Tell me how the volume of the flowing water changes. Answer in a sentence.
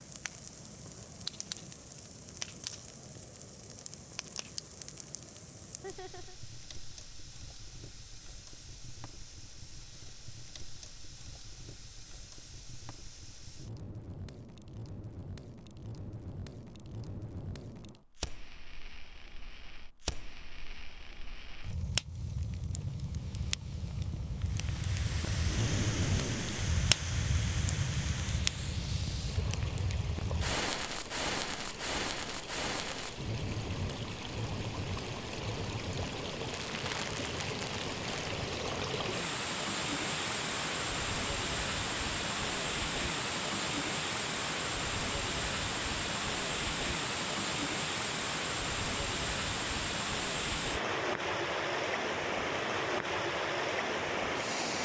The volume of the flowing water goes up.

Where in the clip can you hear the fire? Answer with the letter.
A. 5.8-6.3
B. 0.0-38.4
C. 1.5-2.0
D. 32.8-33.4
B.